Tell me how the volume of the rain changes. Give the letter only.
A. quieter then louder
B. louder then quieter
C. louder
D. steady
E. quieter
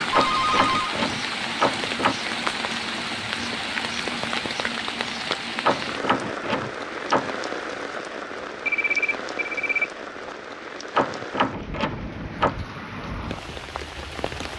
E.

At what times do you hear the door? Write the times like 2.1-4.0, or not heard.
0.1-2.1, 5.6-7.3, 10.9-12.6.